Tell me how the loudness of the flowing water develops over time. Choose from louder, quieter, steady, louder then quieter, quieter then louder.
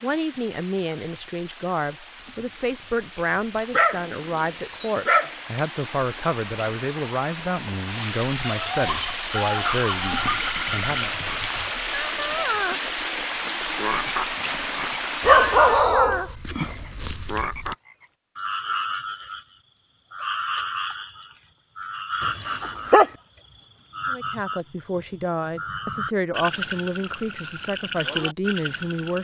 louder.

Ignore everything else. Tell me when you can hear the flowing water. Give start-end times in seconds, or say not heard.
0.0-16.1.